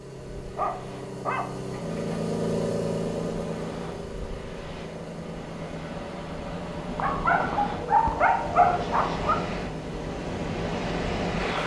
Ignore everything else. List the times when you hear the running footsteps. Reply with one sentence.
You can't hear the running footsteps here.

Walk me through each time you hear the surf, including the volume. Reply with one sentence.
You can hear the surf from 0.0 to 11.6 s, getting louder.